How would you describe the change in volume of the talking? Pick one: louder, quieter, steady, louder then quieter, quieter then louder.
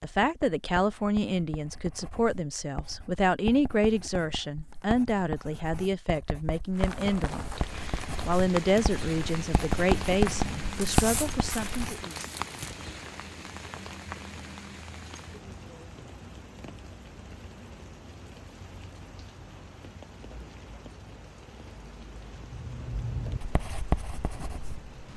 steady.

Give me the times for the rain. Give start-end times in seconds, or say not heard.
6.7-25.1.